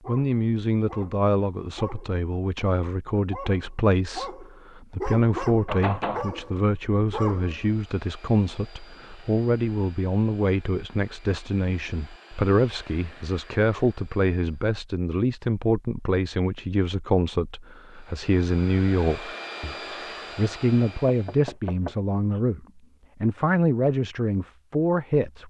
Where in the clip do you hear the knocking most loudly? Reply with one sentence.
The loudest moment of the knocking is at 6 seconds.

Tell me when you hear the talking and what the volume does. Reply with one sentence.
The talking can be heard from 0.1 to 25.4 s, at a steady volume.